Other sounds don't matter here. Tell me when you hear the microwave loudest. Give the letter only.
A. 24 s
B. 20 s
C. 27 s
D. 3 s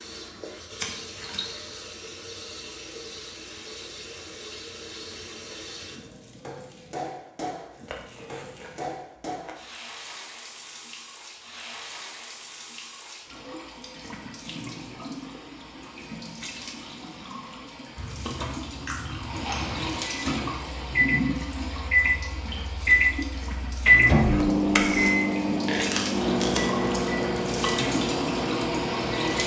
A.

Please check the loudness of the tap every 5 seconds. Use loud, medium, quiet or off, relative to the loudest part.
medium, medium, medium, medium, loud, loud.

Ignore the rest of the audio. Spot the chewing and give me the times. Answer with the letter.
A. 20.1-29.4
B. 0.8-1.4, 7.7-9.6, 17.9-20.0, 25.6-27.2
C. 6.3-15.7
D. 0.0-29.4
B.